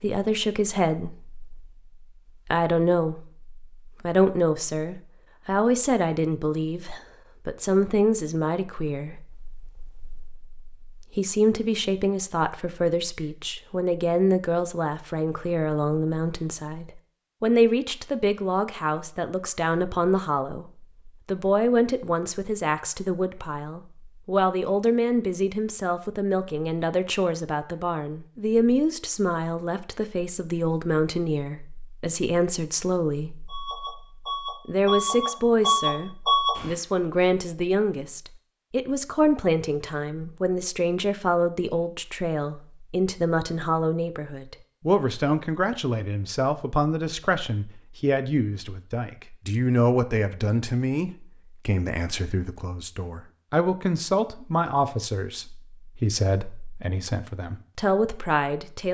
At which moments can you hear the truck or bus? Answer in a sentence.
The truck or bus can be heard from 33.5 to 36.8 s.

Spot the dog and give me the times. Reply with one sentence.
The dog can't be heard in this clip.